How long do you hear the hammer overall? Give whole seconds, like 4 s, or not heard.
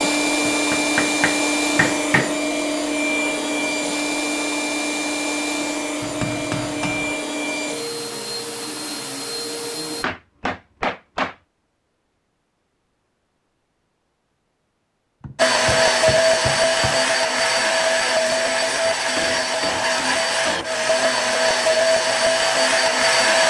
8 s.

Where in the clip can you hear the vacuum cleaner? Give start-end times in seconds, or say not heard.
0.0-10.1, 15.3-23.4.